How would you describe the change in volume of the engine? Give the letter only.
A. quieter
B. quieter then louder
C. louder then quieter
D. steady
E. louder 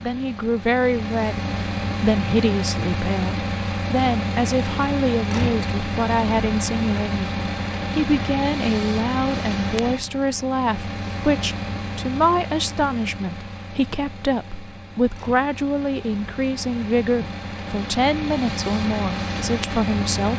B.